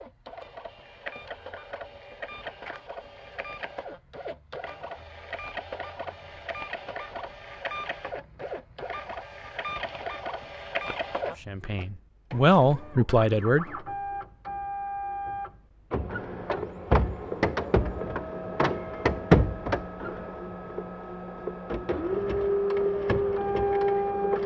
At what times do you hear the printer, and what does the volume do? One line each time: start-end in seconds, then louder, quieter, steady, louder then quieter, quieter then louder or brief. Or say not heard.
0.0-24.4 louder.